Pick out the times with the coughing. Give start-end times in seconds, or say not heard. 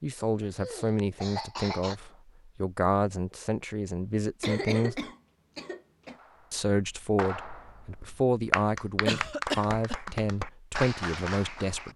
0.4-1.9, 4.4-6.2, 9.1-10.1.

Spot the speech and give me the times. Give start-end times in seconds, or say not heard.
0.0-5.0, 6.5-11.9.